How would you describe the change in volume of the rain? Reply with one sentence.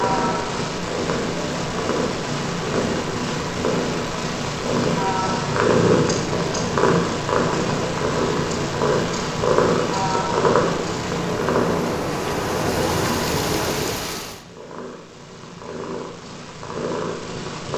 The loudness of the rain goes up.